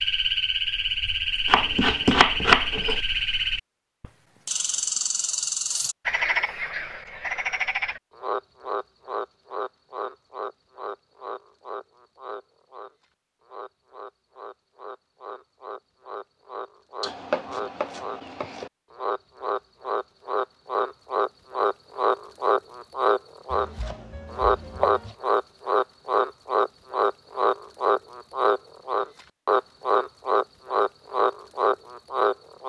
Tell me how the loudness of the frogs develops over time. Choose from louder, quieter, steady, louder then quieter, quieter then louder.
quieter then louder.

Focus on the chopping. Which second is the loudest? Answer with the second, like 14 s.
2 s.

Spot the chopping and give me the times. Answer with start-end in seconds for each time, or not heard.
1.4-3.0, 17.0-18.7, 23.5-25.1.